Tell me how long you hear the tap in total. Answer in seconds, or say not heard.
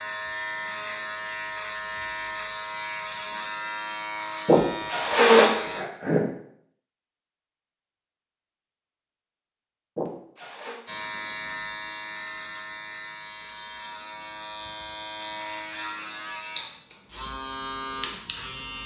not heard.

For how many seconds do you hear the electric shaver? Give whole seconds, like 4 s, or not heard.
14 s.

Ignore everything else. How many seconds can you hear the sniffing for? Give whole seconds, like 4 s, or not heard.
3 s.